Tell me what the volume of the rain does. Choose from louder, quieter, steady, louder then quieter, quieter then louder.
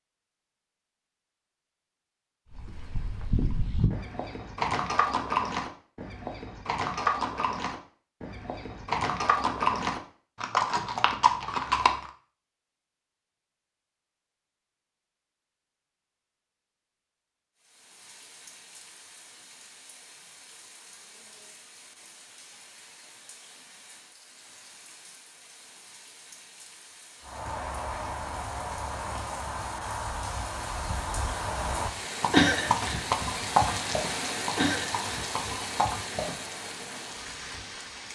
louder.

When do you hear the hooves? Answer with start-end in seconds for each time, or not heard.
2.5-12.1, 27.2-36.4.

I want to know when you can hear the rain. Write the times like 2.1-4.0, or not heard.
17.6-38.0.